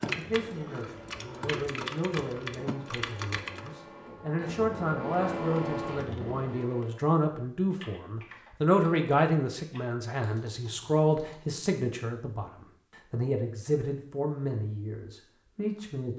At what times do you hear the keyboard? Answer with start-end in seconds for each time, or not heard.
0.0-3.8, 7.7-11.3.